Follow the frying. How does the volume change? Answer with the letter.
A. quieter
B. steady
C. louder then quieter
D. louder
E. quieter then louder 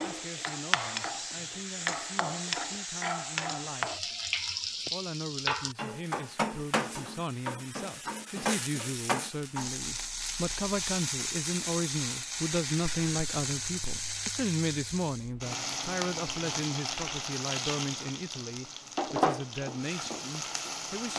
B.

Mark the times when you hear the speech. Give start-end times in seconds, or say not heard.
0.0-4.0, 4.9-21.1.